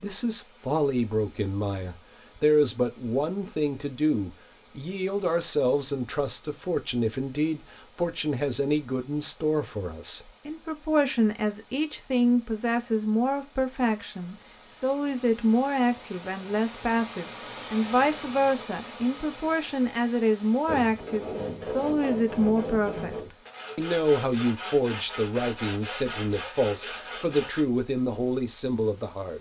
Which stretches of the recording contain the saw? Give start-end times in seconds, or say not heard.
20.6-27.6.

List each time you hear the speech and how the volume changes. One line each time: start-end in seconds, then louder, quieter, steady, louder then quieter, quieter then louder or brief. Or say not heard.
0.0-29.3 steady.